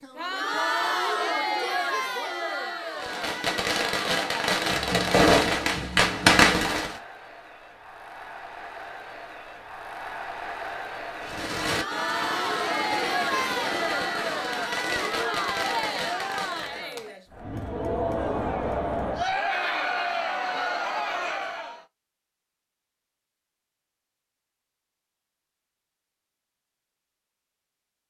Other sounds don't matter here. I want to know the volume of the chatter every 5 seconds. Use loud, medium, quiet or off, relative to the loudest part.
loud, quiet, loud, loud, loud, off.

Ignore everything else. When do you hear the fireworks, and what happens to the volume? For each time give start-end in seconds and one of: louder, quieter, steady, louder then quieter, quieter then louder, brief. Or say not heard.
3.0-7.0 louder
11.2-16.9 steady.